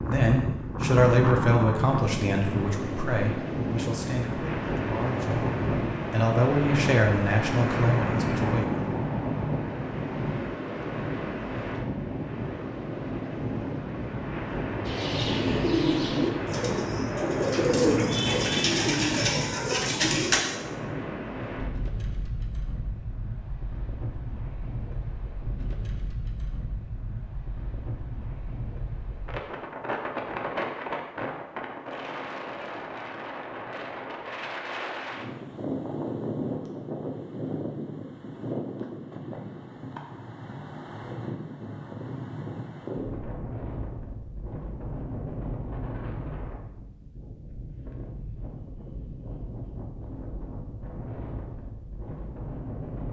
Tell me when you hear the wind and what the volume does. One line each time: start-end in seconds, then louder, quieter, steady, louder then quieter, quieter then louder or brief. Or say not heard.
0.0-53.0 quieter.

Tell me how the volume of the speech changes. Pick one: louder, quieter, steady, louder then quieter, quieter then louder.
quieter then louder.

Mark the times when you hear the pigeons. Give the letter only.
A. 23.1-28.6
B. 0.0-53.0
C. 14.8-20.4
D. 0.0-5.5
C.